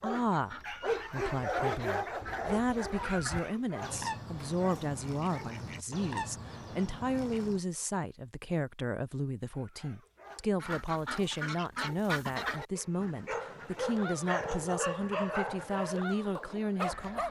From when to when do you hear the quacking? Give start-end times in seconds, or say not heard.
0.1-7.6, 10.6-17.2.